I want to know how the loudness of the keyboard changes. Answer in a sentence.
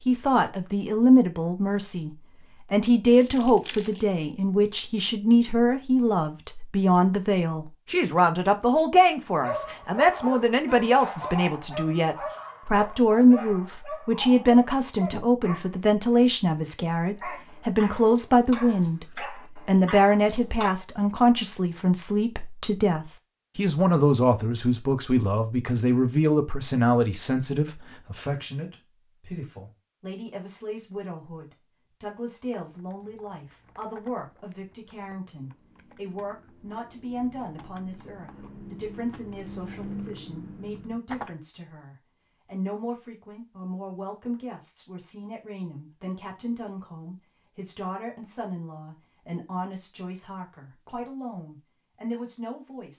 The loudness of the keyboard goes up.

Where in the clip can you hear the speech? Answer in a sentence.
The speech can be heard from 0.0 to 52.9 s.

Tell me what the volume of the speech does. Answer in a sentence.
The volume of the speech goes down.